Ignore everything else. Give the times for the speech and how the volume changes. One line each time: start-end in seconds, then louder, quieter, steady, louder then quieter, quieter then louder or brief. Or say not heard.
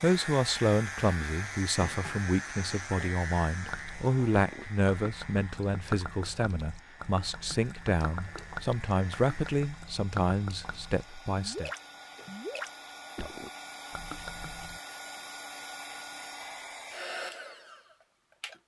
0.0-11.7 steady.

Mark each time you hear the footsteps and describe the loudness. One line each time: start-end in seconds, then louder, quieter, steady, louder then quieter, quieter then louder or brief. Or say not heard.
not heard.